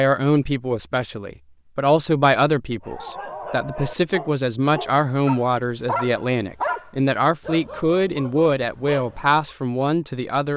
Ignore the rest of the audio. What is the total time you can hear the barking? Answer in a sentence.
The barking can be heard for 7 seconds in total.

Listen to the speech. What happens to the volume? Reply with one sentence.
The loudness of the speech stays about the same.